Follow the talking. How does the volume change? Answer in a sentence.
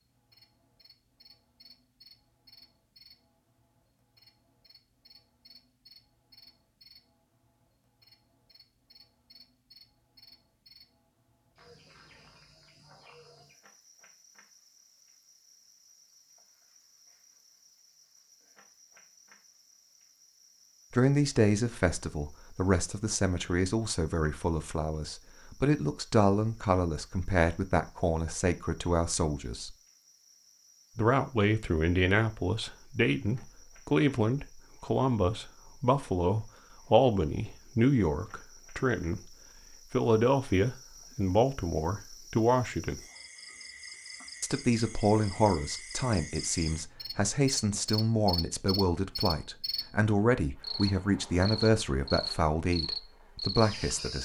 The volume of the talking stays about the same.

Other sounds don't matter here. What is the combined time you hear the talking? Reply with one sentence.
The talking can be heard for 30 seconds in total.